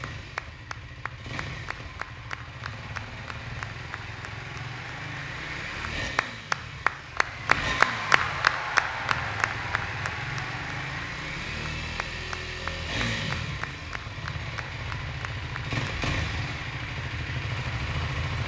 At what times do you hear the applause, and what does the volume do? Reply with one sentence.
The applause can be heard from 0.0 to 18.4 s, getting louder then quieter.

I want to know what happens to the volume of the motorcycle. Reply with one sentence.
The volume of the motorcycle goes up.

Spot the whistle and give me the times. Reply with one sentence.
You can't hear the whistle here.